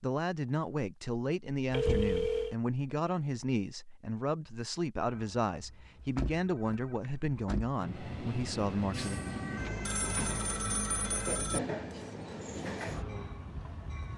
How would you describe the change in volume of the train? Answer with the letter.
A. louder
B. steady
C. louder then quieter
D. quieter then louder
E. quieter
B.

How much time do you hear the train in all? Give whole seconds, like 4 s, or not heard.
6 s.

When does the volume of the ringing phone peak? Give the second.
2 s.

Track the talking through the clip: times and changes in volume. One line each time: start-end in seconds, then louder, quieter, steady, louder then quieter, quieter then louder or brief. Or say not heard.
0.0-9.2 steady.